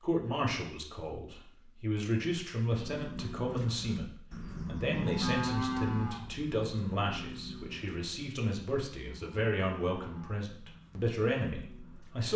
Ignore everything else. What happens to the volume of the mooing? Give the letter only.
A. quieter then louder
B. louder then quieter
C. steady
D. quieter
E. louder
B.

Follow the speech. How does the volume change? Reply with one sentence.
The loudness of the speech stays about the same.